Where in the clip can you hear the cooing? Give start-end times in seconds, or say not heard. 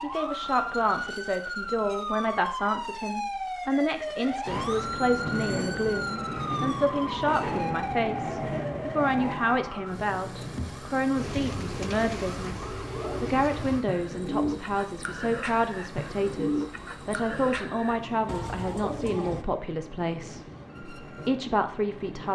11.2-19.4.